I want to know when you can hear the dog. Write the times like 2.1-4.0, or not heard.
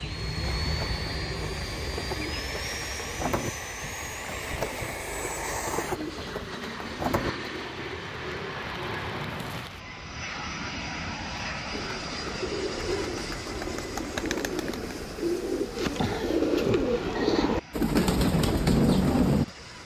not heard.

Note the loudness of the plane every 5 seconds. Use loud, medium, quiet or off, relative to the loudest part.
loud, loud, loud, medium.